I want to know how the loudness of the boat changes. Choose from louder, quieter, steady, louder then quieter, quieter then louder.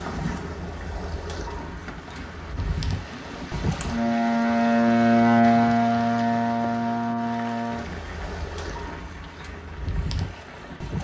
louder then quieter.